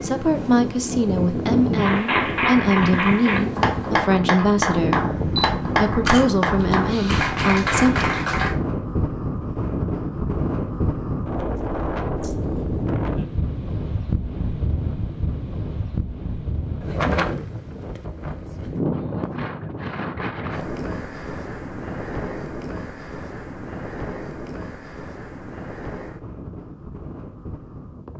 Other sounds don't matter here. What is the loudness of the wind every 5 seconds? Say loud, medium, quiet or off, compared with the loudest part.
loud, loud, loud, loud, medium, medium.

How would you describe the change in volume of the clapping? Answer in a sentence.
The volume of the clapping stays about the same.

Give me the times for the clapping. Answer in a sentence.
The clapping can be heard from 1.8 to 8.6 s.